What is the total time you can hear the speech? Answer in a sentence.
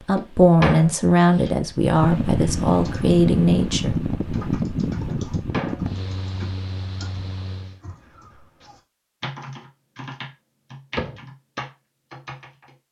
You can hear the speech for 4 seconds altogether.